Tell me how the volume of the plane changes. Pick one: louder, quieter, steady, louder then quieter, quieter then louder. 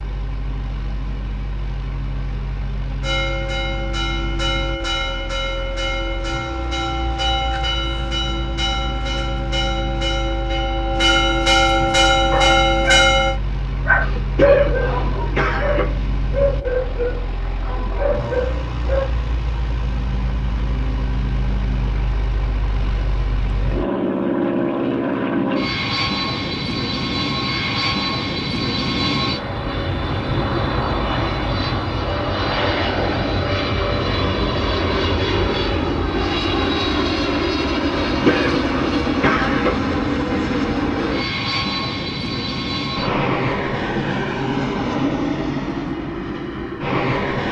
louder.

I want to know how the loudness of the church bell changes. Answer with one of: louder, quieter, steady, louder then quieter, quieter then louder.
louder.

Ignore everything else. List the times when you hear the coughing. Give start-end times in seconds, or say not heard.
14.0-15.9, 38.0-39.9.